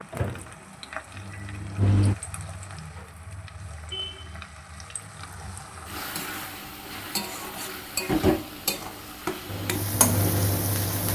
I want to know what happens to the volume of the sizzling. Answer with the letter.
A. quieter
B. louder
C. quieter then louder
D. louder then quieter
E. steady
B.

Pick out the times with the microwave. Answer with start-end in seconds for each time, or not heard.
0.1-2.1, 9.4-11.1.